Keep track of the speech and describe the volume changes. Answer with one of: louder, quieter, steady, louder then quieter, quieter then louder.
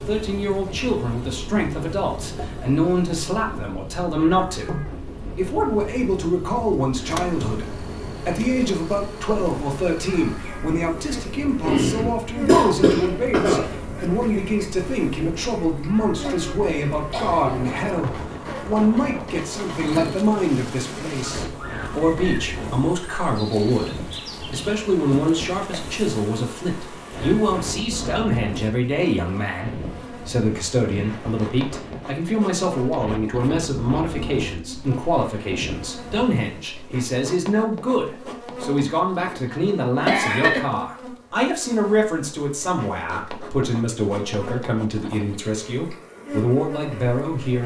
steady.